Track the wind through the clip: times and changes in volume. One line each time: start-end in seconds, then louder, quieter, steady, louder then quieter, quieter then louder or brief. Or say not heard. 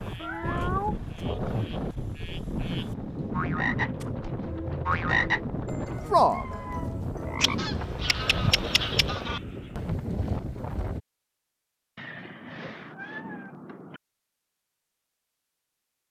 0.0-11.0 steady.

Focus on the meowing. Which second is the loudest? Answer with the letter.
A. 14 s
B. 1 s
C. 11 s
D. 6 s
B.